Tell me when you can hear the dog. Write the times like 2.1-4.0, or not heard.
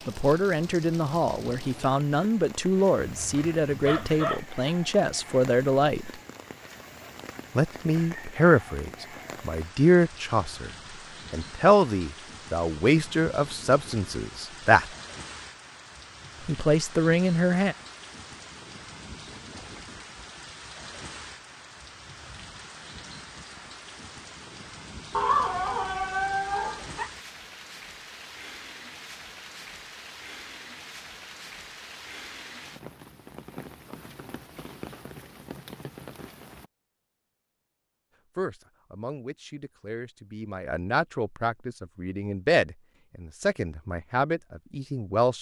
3.1-4.5, 25.1-27.1.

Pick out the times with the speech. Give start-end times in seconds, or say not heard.
0.1-6.1, 7.5-10.7, 11.3-14.9, 16.4-17.8, 38.4-45.3.